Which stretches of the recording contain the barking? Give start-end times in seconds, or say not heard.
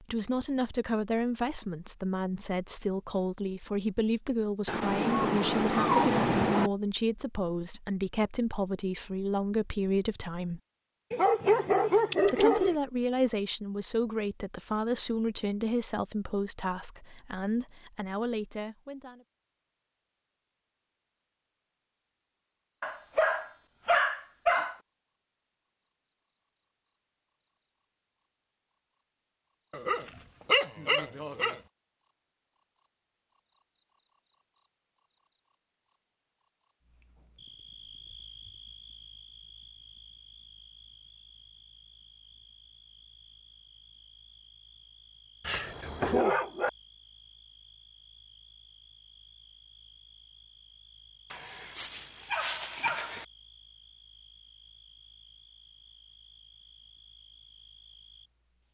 4.7-6.7, 11.1-12.8, 22.8-24.8, 29.7-31.6, 45.5-46.7, 51.3-53.2.